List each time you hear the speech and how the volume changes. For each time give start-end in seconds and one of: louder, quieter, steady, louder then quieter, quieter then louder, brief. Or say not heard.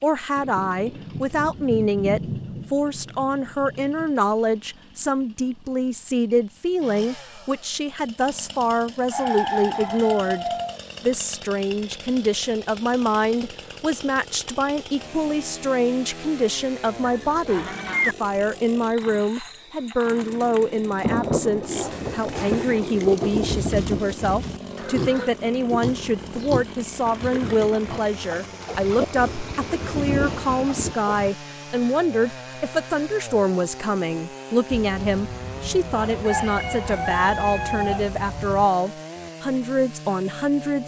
0.0-40.8 steady.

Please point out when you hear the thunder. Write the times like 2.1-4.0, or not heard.
0.3-4.2, 21.0-24.1, 28.6-30.9.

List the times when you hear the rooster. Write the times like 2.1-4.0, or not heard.
9.1-10.8, 17.0-18.1, 34.7-38.6.